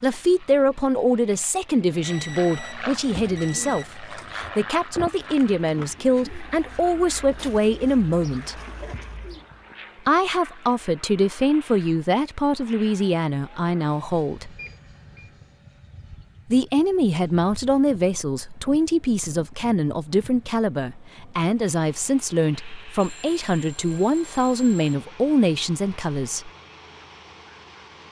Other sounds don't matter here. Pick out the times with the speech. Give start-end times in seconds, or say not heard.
0.0-8.6, 10.1-14.6, 16.5-26.5.